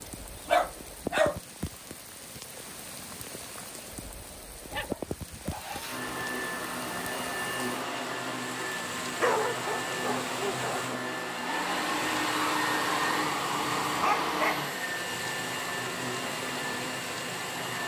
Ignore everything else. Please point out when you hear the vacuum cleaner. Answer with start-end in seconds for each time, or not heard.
5.5-17.8.